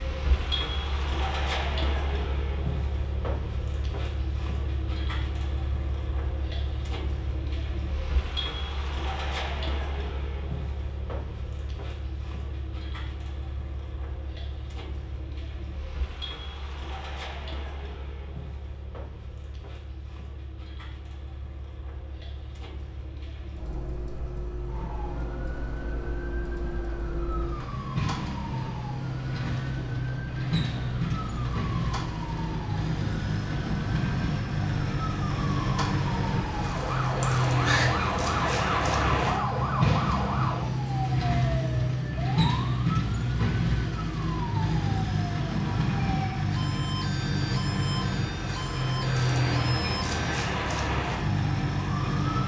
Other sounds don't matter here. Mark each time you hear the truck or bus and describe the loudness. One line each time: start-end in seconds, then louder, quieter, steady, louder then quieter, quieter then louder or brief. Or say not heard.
0.0-52.4 quieter then louder.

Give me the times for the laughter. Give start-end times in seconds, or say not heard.
37.2-37.9.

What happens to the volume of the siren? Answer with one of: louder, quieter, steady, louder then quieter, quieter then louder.
louder then quieter.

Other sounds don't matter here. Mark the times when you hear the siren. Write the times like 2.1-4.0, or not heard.
24.6-52.4.